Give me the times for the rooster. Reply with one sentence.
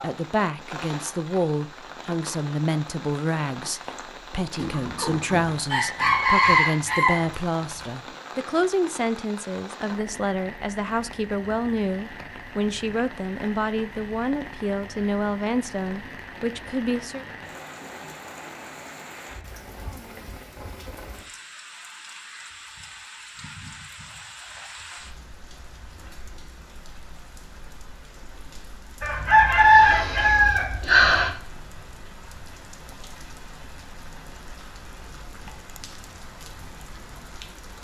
You can hear the rooster from 4.5 to 7.8 s and from 29.0 to 31.3 s.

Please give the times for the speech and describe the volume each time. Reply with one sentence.
You can hear the speech from 0.0 to 17.2 s, at a steady volume.